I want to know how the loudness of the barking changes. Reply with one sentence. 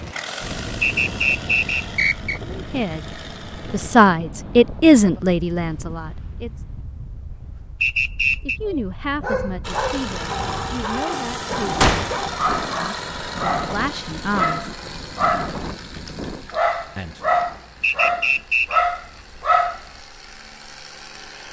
The volume of the barking goes up.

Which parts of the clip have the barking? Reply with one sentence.
You can hear the barking from 8.7 to 19.8 s.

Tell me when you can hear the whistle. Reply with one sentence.
The whistle can be heard from 0.8 to 2.4 s, from 7.8 to 8.6 s and from 17.8 to 18.9 s.